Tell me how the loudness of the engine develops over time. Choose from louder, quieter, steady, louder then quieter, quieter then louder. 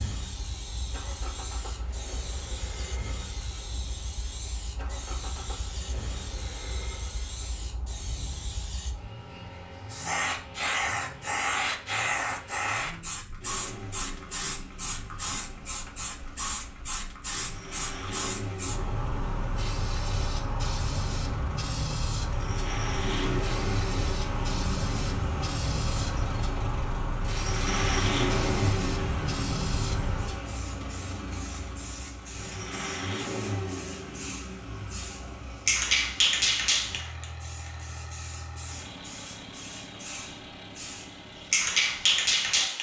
louder then quieter.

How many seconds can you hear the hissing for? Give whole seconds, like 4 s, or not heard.
43 s.